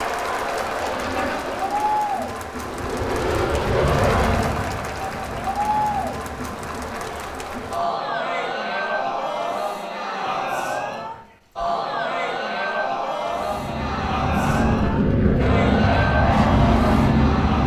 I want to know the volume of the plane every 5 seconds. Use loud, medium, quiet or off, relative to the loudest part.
medium, quiet, medium, loud.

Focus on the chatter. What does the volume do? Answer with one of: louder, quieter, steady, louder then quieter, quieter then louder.
steady.